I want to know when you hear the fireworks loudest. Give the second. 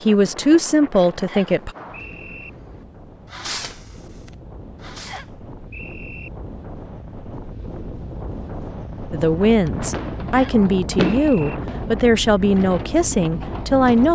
11 s.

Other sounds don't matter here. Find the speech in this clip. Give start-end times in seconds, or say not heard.
0.0-1.7, 9.1-14.1.